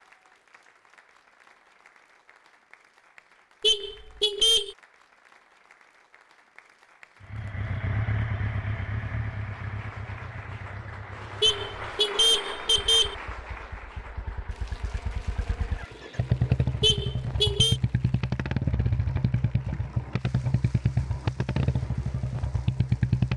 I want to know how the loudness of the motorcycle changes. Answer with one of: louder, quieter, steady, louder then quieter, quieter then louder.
quieter then louder.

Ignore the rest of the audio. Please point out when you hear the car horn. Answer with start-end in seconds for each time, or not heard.
3.6-4.8, 11.4-13.2, 16.8-17.8.